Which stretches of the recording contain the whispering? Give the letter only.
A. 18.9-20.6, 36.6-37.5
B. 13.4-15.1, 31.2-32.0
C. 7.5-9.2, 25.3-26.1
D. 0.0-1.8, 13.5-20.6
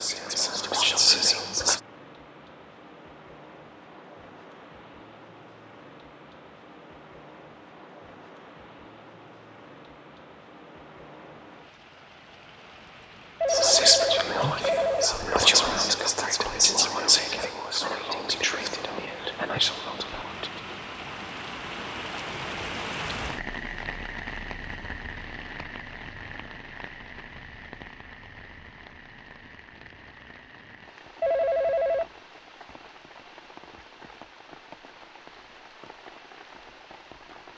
D.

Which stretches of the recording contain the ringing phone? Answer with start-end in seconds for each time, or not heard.
13.4-15.1, 31.2-32.0.